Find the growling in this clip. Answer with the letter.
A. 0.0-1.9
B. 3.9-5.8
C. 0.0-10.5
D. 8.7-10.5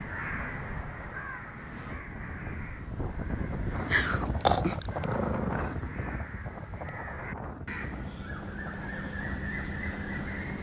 B.